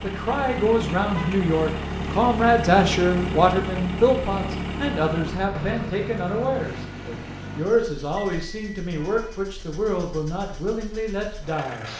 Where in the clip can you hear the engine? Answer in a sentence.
You can hear the engine from 0.0 to 11.9 s.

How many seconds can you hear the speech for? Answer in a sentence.
The speech can be heard for 12 seconds in total.